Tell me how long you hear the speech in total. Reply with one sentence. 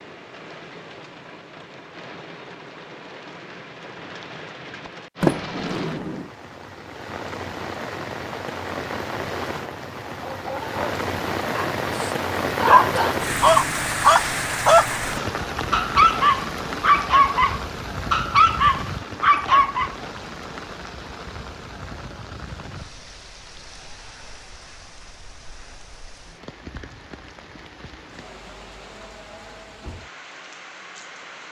The speech can't be heard in this clip.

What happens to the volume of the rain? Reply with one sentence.
The volume of the rain goes up, then down.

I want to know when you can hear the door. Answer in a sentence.
The door can be heard from 5.2 to 6.3 s.